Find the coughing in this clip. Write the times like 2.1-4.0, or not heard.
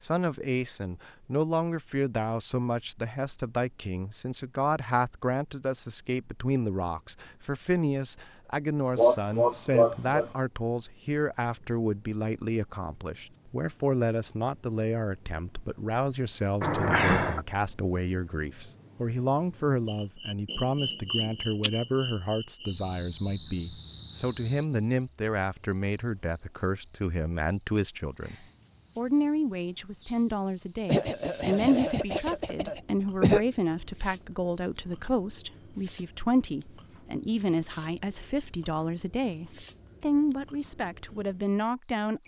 8.9-10.3, 16.6-17.4, 30.9-33.4.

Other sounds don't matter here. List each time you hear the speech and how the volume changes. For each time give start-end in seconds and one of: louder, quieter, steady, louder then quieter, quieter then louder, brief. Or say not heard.
0.0-42.2 steady.